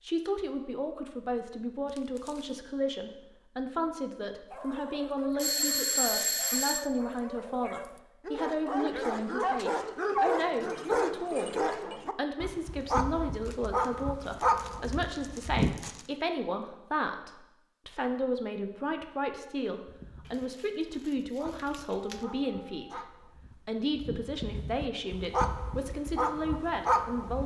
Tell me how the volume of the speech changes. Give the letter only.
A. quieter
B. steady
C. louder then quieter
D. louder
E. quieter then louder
B.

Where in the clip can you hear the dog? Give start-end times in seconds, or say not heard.
4.5-15.7, 19.9-27.4.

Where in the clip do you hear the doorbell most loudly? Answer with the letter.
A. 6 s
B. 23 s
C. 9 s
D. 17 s
A.